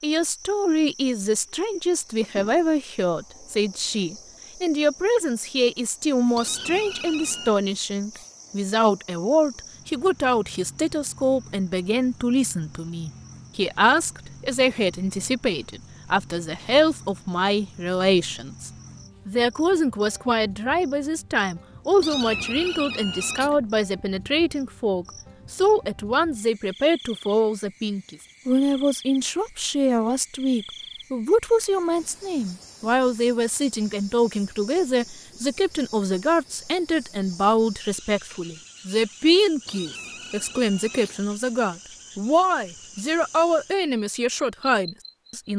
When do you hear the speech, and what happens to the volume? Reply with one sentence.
You can hear the speech from 0.0 to 45.5 s, at a steady volume.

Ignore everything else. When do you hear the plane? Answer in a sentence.
You can't hear the plane here.